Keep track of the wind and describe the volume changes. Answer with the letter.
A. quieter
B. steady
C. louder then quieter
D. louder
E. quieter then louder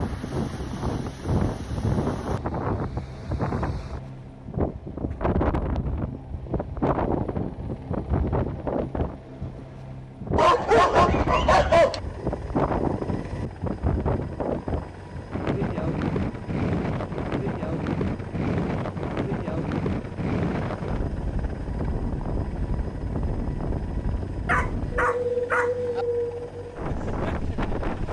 B.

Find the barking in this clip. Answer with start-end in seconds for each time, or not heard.
10.3-12.0, 24.4-26.1.